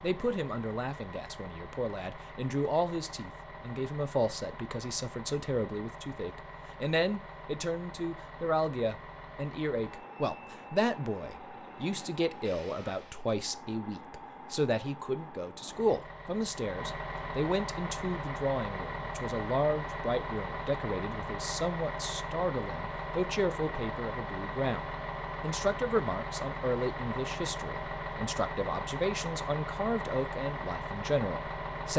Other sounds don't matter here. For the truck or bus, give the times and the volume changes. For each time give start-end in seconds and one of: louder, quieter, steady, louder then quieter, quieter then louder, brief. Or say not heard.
0.0-31.9 louder.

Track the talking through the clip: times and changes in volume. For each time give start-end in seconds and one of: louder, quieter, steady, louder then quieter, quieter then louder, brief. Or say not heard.
0.0-31.9 steady.